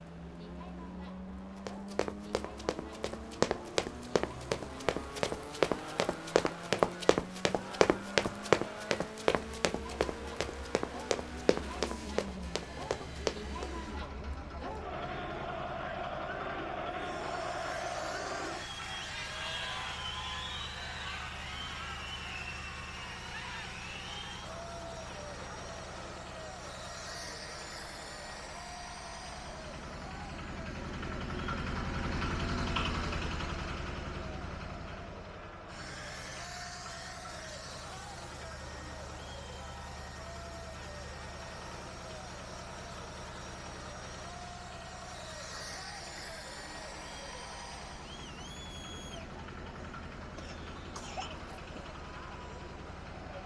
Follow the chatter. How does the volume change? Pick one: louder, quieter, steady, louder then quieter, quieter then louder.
louder then quieter.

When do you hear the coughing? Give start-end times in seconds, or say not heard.
50.4-51.3.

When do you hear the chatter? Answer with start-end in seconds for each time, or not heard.
0.0-53.4.